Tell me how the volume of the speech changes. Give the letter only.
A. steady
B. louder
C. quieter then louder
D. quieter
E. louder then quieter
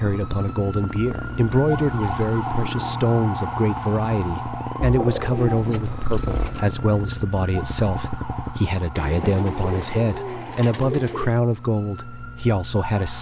A.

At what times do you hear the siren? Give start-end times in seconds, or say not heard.
0.0-13.1.